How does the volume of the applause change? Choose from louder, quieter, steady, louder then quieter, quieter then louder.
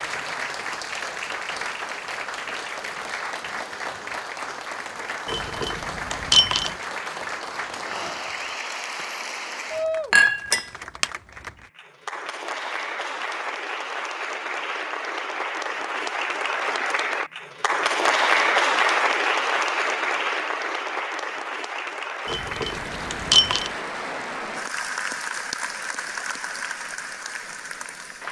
louder then quieter.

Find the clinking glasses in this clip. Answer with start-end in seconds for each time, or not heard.
5.2-6.7, 10.1-11.1, 22.2-23.7.